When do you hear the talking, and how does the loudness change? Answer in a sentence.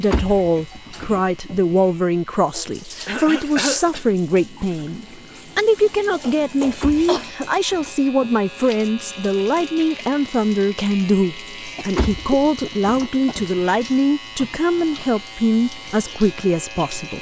The talking can be heard from 0.0 to 17.1 s, at a steady volume.